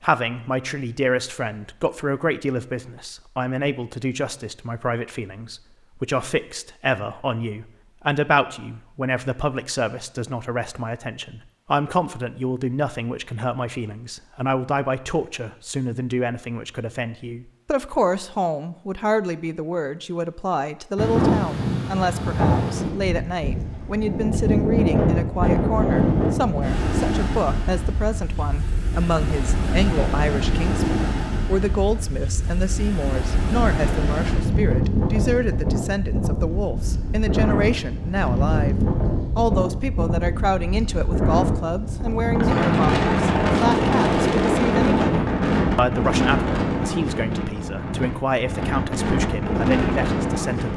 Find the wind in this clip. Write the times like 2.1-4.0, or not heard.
20.9-50.7.